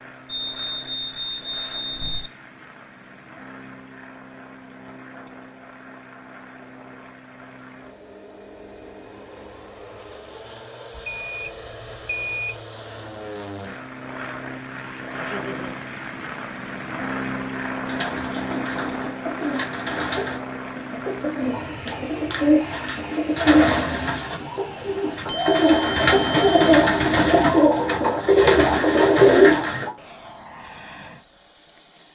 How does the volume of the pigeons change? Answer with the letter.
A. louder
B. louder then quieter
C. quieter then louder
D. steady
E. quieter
A.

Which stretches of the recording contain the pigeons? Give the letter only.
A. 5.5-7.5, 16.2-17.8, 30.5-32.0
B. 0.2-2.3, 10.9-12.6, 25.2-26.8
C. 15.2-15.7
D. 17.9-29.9
D.